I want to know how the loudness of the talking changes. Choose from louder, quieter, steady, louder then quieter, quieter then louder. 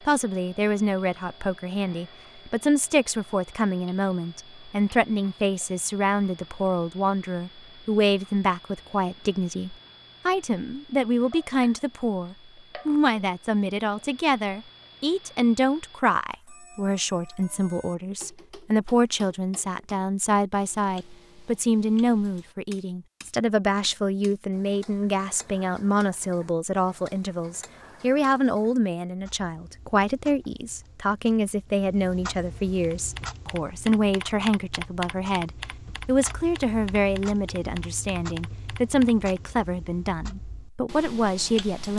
steady.